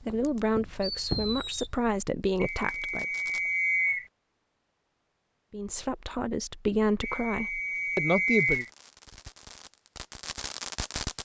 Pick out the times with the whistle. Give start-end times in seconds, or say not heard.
2.4-4.0, 7.0-8.7.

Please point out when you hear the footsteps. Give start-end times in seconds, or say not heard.
0.0-1.8.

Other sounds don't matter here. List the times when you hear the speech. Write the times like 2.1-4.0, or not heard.
0.0-3.0, 5.5-8.7.